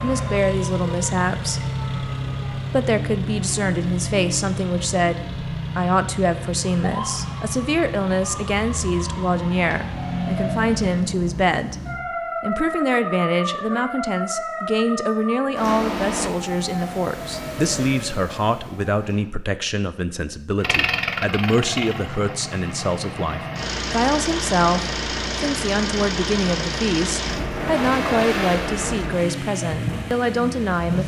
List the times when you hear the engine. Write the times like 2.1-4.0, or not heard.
0.0-11.1, 20.6-31.0.